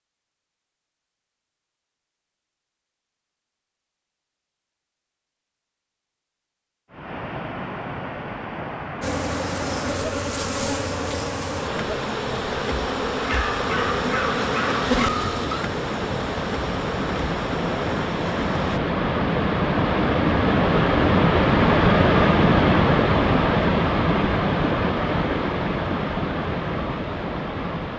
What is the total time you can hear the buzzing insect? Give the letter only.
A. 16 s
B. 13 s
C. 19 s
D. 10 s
D.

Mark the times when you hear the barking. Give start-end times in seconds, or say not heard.
13.2-15.7.